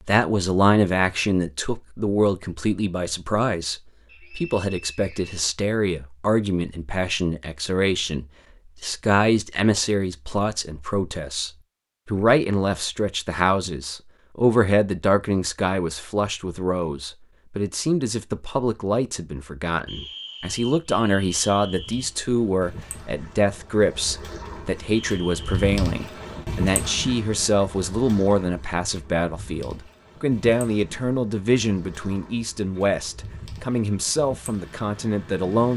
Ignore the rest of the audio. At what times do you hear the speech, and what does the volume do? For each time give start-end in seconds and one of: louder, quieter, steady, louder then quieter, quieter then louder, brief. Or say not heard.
0.1-35.7 steady.